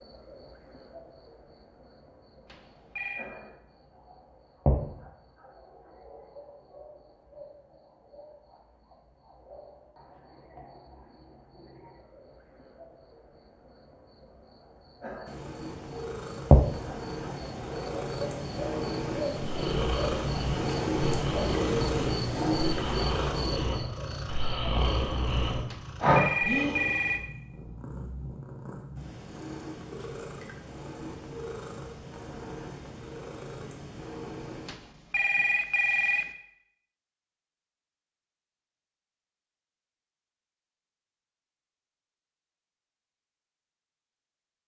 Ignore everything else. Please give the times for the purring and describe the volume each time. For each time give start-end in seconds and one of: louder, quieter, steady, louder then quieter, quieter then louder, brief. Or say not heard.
15.2-34.8 louder then quieter.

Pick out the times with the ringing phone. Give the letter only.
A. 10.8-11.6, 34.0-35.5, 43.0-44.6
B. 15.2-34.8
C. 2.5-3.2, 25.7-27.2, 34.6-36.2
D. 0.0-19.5
C.